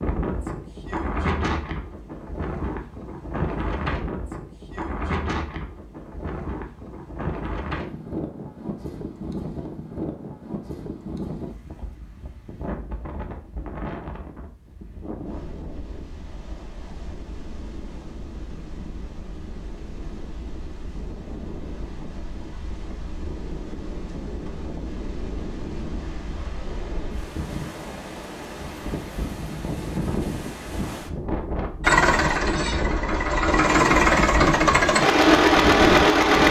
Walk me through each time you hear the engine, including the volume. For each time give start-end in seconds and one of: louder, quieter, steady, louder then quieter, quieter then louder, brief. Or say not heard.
31.8-36.4 louder.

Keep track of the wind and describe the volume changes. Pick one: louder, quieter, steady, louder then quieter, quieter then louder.
quieter then louder.